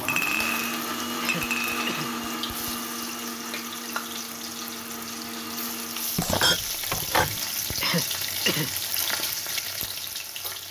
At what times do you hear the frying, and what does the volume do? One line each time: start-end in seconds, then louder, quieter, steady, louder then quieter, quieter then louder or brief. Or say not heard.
0.0-10.6 louder.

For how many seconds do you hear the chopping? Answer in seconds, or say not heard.
not heard.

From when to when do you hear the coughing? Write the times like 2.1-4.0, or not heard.
0.8-2.1, 7.3-9.2.